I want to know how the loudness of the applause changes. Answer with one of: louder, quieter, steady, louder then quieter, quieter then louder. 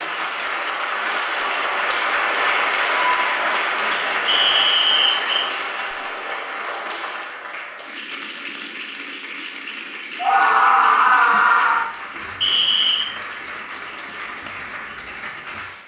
quieter.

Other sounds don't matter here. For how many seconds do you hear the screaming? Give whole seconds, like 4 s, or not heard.
2 s.